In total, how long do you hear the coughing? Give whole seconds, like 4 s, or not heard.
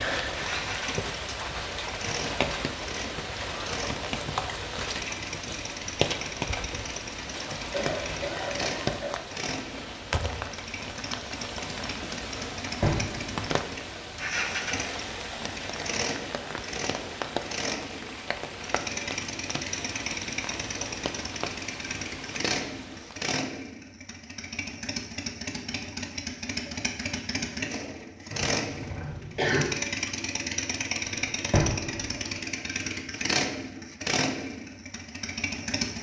3 s.